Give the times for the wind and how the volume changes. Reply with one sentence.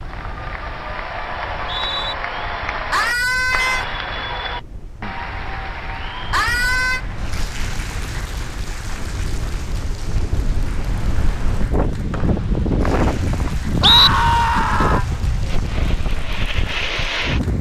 The wind can be heard from 0.0 to 17.5 s, getting louder.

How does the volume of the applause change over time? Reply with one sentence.
The loudness of the applause goes down.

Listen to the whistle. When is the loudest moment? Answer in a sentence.
The volume of the whistle peaks at 14 seconds.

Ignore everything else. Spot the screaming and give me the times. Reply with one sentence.
You can hear the screaming from 2.9 to 3.9 s, from 6.3 to 7.0 s and from 13.8 to 15.1 s.